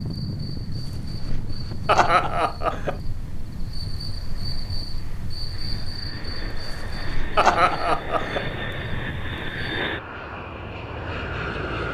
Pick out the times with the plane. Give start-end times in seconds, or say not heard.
0.0-11.8.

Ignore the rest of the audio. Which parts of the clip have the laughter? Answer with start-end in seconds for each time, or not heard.
1.9-3.0, 7.3-8.4.